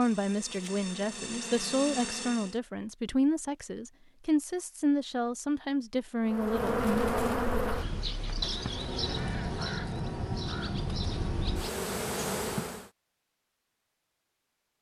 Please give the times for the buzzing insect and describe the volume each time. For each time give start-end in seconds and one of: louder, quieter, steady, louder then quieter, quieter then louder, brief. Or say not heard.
0.0-2.5 brief
6.2-12.9 quieter then louder.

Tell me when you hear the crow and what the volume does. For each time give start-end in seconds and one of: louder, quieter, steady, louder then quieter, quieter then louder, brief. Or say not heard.
6.5-11.7 louder.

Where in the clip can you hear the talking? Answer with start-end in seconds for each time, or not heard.
0.0-6.9.